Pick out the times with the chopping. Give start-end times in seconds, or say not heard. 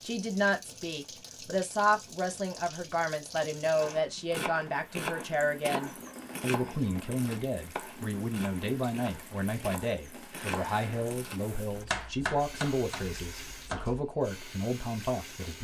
3.8-14.1.